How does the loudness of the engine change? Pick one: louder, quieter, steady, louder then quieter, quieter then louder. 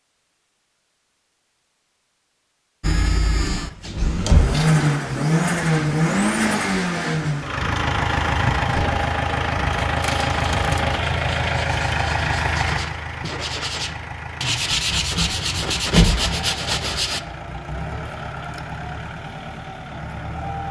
quieter.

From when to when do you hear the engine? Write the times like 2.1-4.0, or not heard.
2.8-20.6.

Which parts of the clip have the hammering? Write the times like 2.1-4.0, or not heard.
not heard.